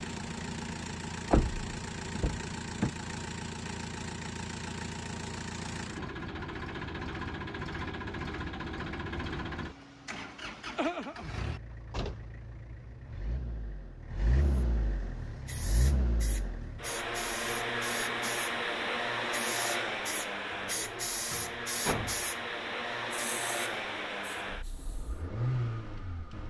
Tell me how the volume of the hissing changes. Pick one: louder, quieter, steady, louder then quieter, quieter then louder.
louder then quieter.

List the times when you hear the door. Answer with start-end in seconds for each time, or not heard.
1.3-3.0, 20.8-22.2.